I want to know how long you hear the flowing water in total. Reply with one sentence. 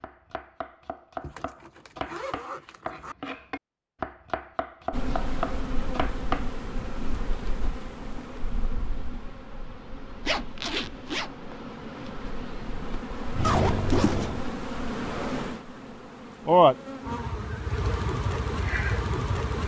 You can't hear the flowing water here.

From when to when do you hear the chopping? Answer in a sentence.
The chopping can be heard from 0.0 to 6.5 s.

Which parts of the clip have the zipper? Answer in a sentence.
You can hear the zipper from 1.2 to 3.1 s, from 10.2 to 11.3 s and from 13.4 to 14.3 s.